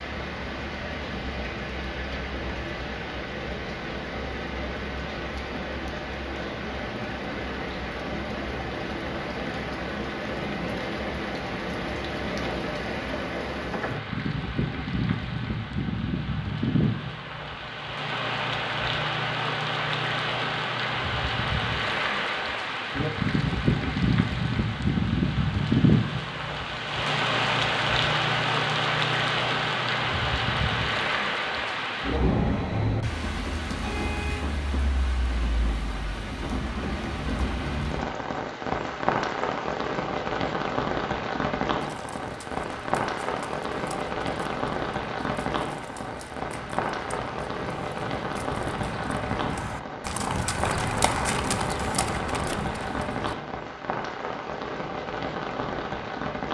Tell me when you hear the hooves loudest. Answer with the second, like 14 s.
51 s.